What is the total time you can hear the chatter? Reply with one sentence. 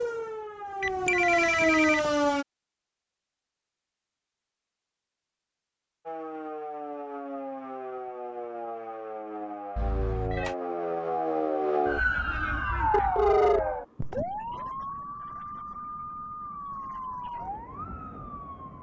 The chatter can't be heard in this clip.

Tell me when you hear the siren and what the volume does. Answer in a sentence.
You can hear the siren briefly from 0.0 to 2.5 s; and from 6.0 to 18.7 s, getting louder then quieter.